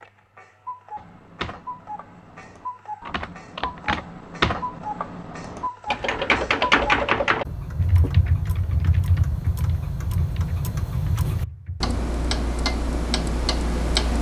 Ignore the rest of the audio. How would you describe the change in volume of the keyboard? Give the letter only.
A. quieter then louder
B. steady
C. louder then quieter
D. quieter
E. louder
C.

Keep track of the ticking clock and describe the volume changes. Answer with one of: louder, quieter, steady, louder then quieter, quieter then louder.
louder.